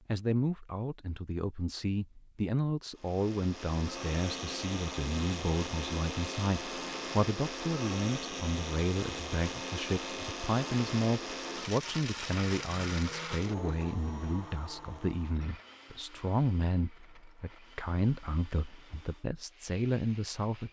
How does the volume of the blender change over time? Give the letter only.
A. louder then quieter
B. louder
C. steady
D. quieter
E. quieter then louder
D.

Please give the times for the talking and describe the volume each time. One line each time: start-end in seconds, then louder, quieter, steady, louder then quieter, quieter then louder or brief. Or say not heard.
0.1-20.6 steady.